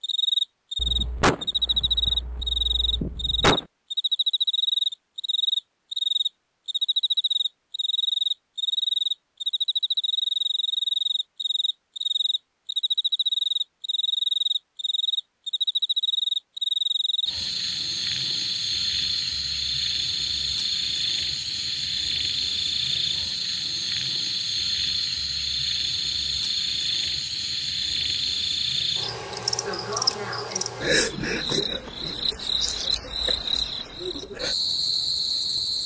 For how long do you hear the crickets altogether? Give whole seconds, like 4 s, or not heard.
36 s.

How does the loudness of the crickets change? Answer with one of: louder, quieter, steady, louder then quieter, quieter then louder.
steady.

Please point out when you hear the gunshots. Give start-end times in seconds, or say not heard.
0.8-3.6.